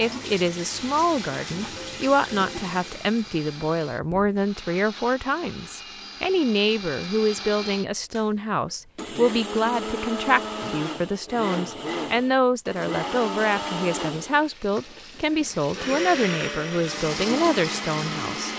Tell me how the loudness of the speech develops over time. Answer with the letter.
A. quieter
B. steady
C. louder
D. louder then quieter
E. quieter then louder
B.